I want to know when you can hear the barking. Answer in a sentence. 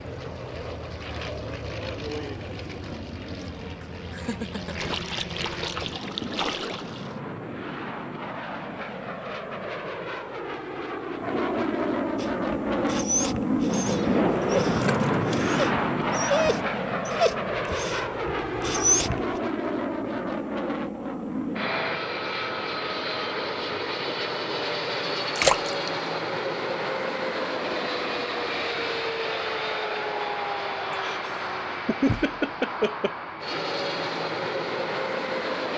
The barking can be heard from 12.2 to 19.4 s.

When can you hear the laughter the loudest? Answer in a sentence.
The volume of the laughter peaks at 32 seconds.